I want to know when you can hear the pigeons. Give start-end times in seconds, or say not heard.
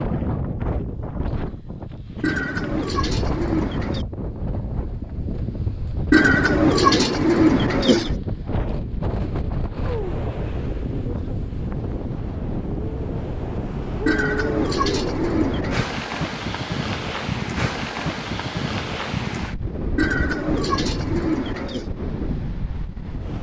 2.2-4.0, 6.1-8.2, 14.1-15.8, 19.9-21.9.